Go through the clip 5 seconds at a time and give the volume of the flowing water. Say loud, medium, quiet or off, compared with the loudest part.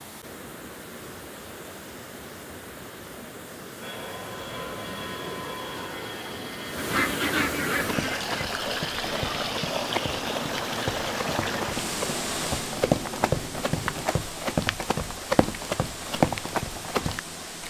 medium, loud, loud, medium.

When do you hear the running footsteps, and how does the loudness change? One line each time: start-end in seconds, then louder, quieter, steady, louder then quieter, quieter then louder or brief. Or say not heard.
7.8-17.2 louder.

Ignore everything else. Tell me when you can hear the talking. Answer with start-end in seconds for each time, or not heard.
not heard.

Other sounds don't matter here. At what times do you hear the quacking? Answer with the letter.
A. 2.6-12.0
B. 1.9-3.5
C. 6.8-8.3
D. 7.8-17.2
C.